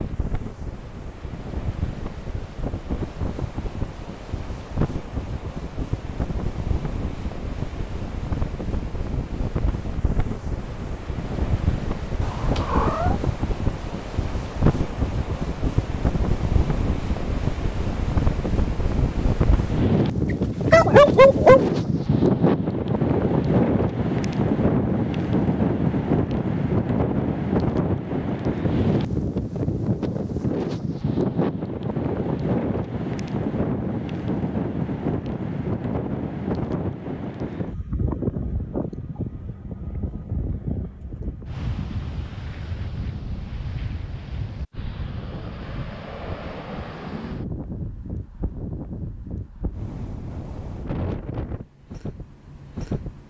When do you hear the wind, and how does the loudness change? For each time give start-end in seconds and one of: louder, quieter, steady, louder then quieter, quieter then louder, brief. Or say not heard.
0.0-53.2 louder then quieter.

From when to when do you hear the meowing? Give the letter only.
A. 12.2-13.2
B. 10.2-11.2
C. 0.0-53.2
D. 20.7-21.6
A.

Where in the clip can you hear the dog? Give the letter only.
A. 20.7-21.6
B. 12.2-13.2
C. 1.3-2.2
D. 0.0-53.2
A.